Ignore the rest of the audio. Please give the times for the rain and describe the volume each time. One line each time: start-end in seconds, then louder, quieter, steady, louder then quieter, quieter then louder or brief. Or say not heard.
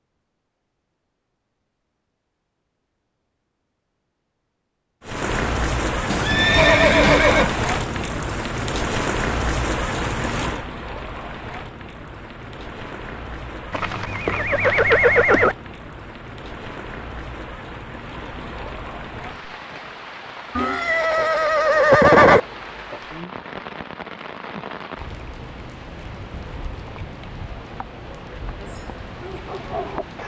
5.0-30.2 quieter.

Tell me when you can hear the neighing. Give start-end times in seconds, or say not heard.
6.1-7.5, 13.7-15.6, 20.6-22.4.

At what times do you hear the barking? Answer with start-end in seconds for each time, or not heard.
28.7-30.1.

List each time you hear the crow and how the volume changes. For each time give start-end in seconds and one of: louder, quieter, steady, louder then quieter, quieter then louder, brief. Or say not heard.
not heard.